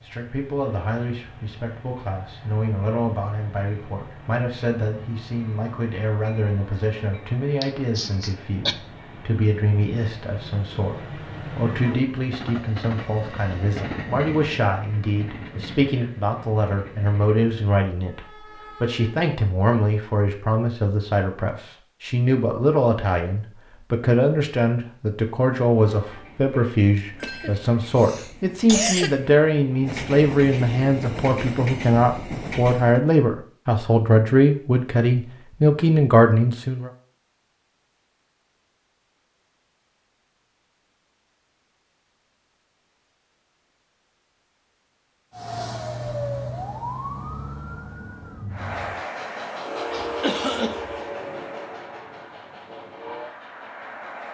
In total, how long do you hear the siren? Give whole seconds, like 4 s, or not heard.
4 s.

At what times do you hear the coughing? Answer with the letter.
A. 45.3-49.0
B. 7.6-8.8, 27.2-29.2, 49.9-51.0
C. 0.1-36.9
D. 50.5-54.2
B.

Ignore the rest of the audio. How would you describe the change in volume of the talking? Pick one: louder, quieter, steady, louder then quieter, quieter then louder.
louder.